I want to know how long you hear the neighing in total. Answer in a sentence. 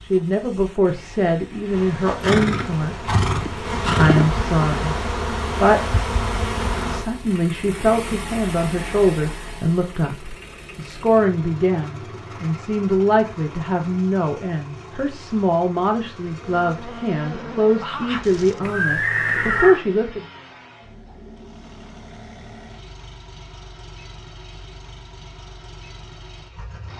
The neighing can be heard for 3 seconds in total.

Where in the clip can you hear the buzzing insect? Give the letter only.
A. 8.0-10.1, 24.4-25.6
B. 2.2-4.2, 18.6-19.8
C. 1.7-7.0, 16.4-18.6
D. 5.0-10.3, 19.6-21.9
C.